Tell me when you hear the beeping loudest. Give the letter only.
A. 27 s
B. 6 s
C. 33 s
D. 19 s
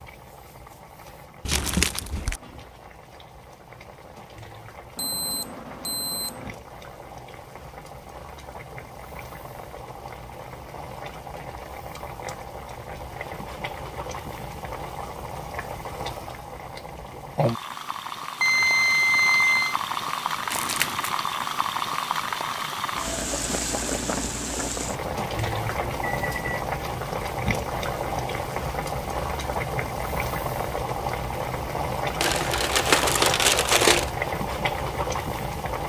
D.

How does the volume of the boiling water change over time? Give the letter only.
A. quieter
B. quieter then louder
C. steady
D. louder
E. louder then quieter
D.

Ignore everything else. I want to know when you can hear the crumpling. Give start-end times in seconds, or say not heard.
1.4-2.4, 20.5-21.1, 32.2-34.1.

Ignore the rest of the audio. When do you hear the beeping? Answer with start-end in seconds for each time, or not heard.
5.0-6.5, 18.4-19.8, 25.8-26.6.